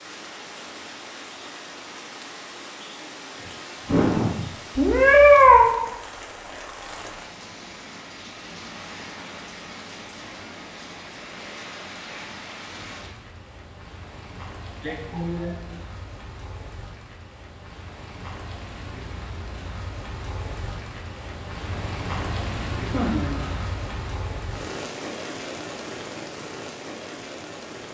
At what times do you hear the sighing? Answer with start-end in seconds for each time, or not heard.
3.4-4.5, 14.8-15.8, 22.9-23.6.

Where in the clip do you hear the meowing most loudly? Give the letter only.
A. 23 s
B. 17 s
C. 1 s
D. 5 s
D.